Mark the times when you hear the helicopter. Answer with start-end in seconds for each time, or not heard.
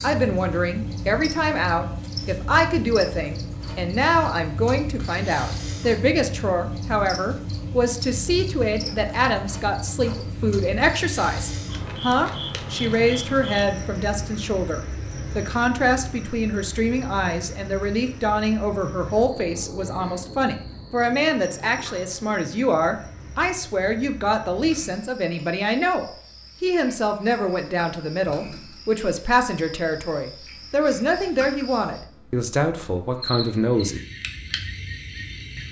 not heard.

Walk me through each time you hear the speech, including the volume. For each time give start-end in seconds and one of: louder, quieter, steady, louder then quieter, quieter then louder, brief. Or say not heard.
0.0-34.0 steady.